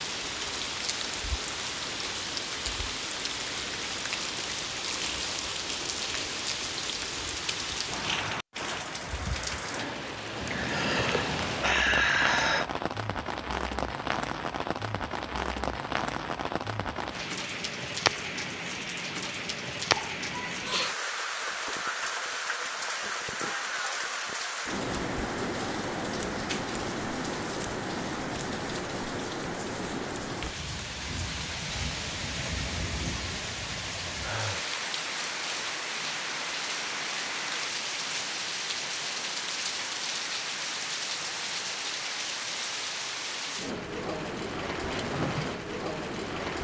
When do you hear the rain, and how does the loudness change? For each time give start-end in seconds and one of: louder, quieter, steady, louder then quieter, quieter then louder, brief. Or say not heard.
0.0-46.6 steady.